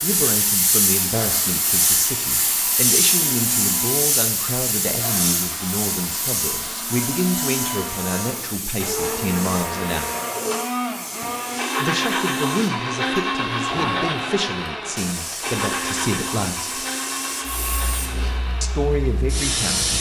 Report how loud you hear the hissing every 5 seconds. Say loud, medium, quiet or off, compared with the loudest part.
loud, medium, medium, medium.